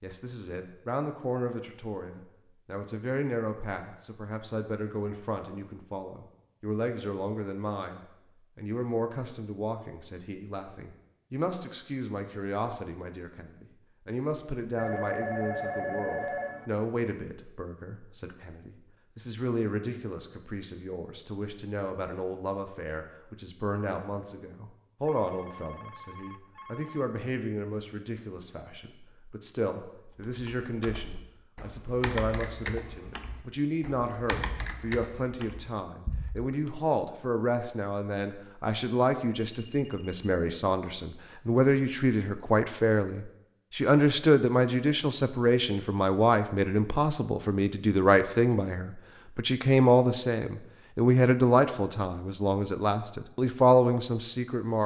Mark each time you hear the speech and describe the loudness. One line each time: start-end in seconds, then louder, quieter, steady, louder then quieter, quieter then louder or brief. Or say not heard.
0.0-54.8 louder.